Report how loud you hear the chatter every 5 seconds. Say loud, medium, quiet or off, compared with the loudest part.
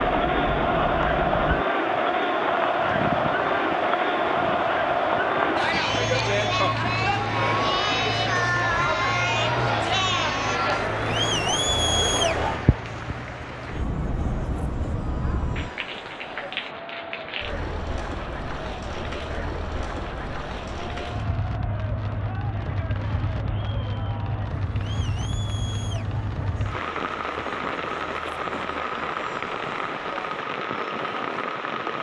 loud, loud, loud, quiet, quiet, quiet, quiet.